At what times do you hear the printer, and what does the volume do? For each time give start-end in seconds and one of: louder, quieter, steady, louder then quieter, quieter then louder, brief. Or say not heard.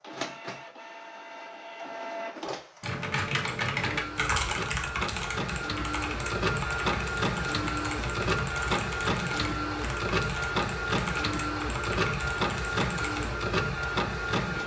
0.0-14.6 louder.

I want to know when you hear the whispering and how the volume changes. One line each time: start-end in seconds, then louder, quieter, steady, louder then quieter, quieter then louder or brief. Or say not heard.
not heard.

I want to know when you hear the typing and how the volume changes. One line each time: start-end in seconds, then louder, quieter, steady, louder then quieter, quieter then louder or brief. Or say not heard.
2.8-13.3 quieter.